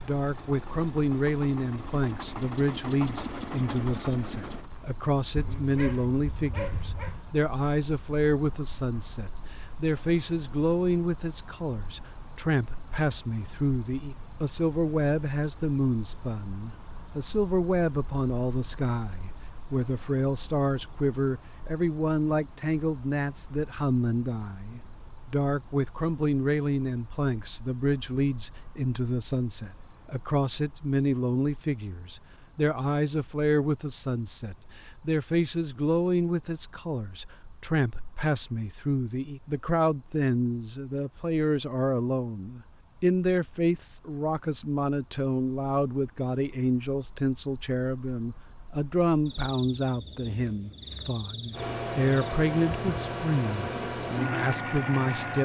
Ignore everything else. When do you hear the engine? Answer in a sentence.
You can hear the engine from 0.0 to 4.7 s and from 51.5 to 55.4 s.